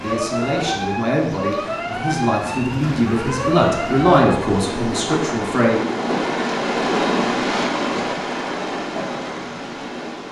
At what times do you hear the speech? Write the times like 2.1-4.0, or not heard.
0.0-5.8.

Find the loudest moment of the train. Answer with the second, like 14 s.
7 s.